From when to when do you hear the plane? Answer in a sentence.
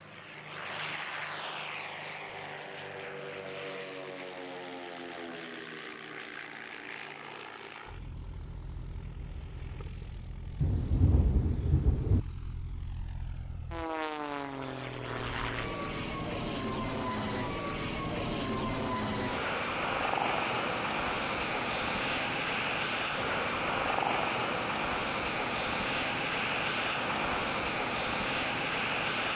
You can hear the plane from 0.0 to 29.3 s.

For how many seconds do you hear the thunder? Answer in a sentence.
You can hear the thunder for 2 seconds altogether.